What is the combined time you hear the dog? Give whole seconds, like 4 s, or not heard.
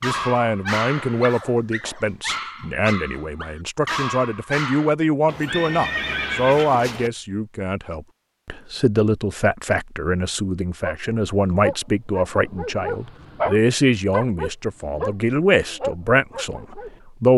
11 s.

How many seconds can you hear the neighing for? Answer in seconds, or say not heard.
2 s.